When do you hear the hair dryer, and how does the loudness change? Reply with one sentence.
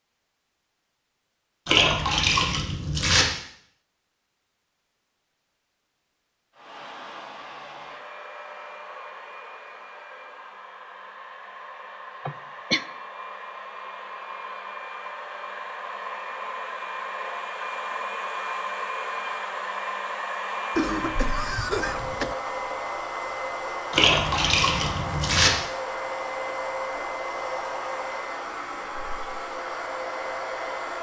You can hear the hair dryer from 6.5 to 30.9 s, getting louder.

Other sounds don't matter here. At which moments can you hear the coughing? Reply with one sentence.
You can hear the coughing from 12.2 to 12.8 s and from 20.8 to 22.4 s.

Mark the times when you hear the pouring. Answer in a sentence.
You can hear the pouring from 1.6 to 3.2 s and from 23.9 to 25.5 s.